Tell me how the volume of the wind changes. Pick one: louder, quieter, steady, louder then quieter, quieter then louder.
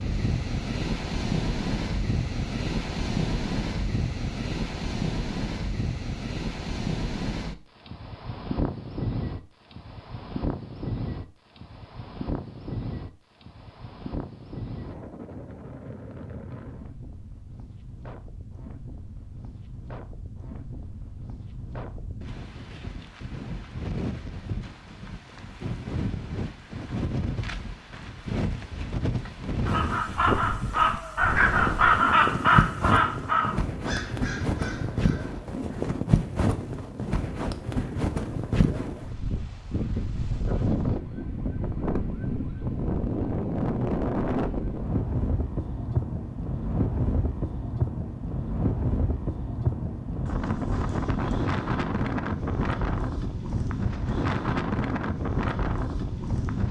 quieter then louder.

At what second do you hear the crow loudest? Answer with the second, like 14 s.
32 s.